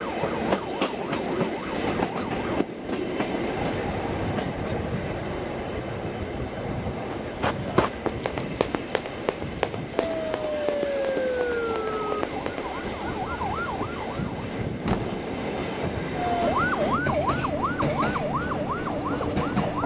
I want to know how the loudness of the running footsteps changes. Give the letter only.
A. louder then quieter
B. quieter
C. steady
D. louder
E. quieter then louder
B.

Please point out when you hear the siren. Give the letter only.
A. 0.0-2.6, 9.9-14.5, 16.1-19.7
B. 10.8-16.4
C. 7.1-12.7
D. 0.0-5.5
A.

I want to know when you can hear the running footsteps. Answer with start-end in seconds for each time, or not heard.
7.1-12.7.